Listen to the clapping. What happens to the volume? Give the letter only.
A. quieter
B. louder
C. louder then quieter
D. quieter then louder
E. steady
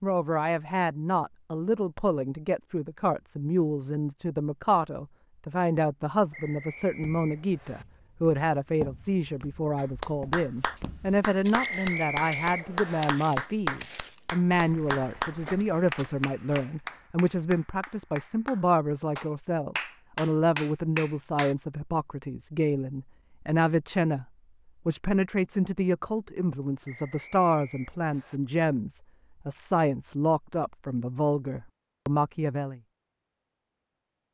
D.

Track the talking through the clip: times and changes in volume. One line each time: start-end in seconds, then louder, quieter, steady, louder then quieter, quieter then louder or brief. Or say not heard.
0.0-24.2 steady
24.9-32.8 steady.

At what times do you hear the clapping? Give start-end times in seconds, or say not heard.
9.8-21.6.